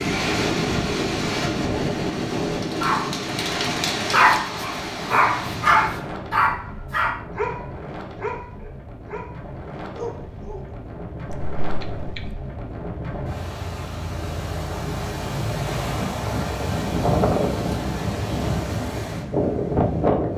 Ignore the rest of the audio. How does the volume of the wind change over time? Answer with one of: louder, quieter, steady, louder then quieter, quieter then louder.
quieter then louder.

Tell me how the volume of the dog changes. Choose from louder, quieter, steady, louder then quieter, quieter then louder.
quieter.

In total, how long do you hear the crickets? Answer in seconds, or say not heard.
not heard.